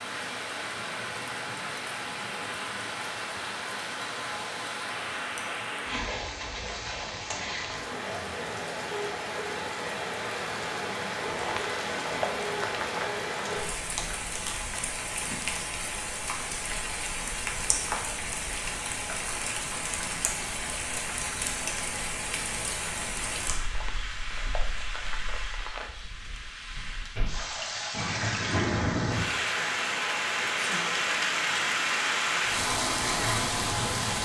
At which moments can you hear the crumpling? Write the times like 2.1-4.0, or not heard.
11.3-13.2, 23.6-25.9.